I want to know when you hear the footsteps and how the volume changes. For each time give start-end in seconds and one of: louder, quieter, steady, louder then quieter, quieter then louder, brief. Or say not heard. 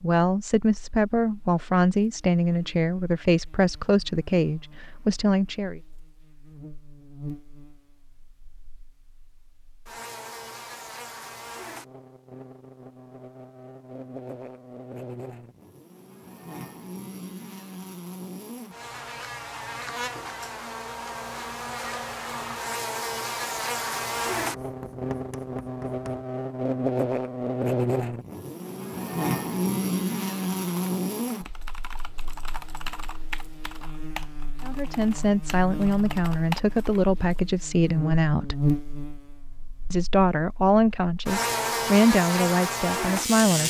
not heard.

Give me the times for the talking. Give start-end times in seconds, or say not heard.
0.0-5.8, 34.6-38.6, 39.9-43.6.